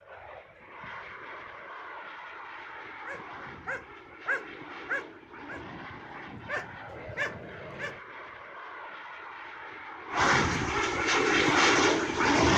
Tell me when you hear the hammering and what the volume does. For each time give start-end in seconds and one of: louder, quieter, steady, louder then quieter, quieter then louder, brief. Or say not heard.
not heard.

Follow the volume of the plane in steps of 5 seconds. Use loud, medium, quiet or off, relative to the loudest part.
quiet, quiet, loud.